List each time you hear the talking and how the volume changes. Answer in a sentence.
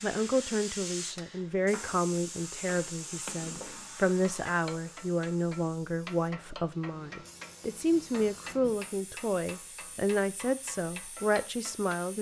You can hear the talking from 0.0 to 12.1 s, at a steady volume.